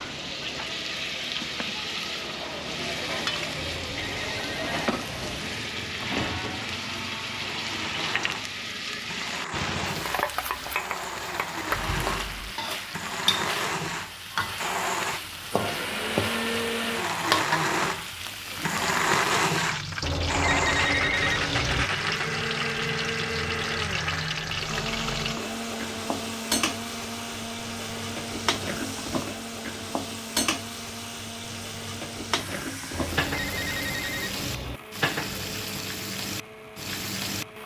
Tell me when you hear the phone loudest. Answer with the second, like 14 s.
21 s.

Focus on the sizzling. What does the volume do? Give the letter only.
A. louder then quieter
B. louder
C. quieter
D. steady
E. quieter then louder
D.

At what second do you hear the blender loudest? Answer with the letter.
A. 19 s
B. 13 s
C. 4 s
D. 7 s
A.